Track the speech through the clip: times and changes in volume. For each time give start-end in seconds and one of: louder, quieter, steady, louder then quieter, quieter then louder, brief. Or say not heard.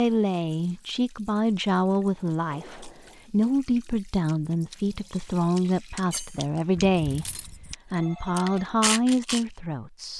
0.0-10.1 steady.